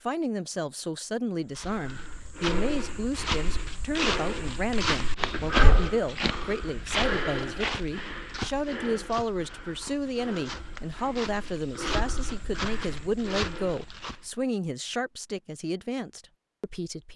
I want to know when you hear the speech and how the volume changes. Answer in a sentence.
You can hear the speech from 0.0 to 17.1 s, at a steady volume.